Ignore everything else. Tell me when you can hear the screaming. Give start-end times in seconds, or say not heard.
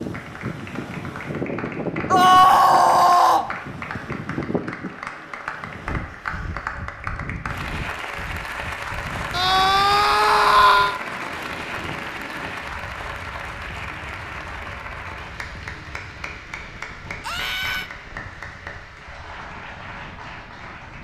2.1-3.5, 9.3-10.9, 17.2-17.9.